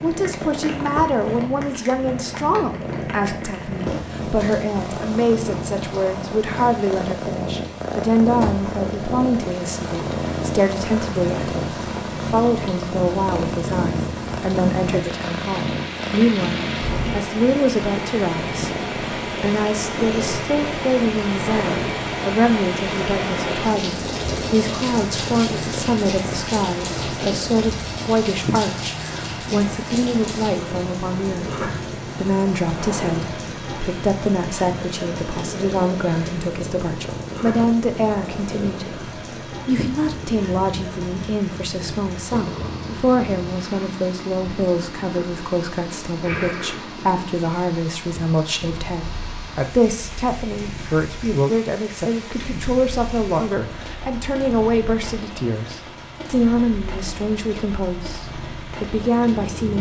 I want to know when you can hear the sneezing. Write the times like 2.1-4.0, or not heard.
not heard.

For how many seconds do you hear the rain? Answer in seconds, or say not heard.
60 s.